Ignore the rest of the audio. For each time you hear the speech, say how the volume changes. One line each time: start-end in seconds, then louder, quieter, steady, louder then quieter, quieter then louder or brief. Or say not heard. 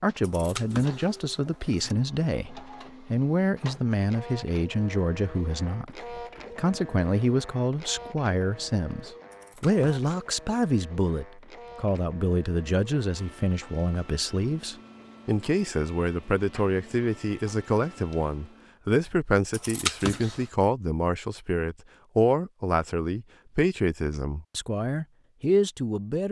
0.0-26.2 steady.